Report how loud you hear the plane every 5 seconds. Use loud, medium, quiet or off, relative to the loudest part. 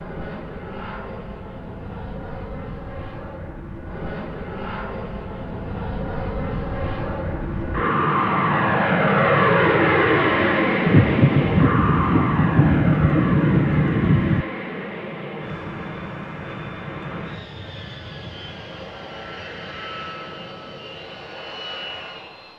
quiet, loud, loud, quiet, quiet.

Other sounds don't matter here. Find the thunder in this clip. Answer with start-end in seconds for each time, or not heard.
10.8-14.4.